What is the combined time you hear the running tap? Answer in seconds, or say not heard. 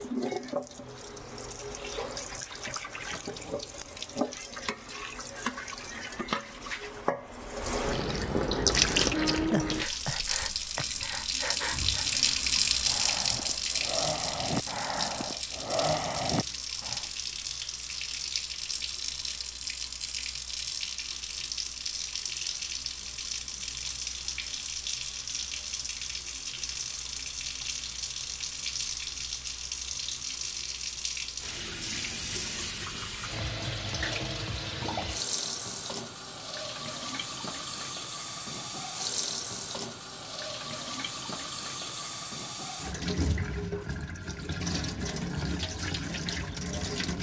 47 s.